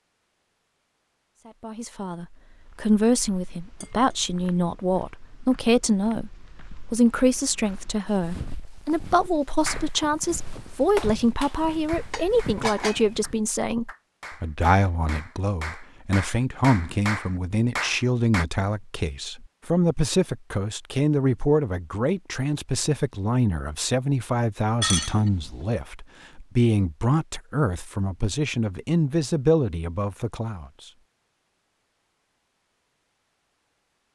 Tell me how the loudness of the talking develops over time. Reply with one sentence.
The loudness of the talking stays about the same.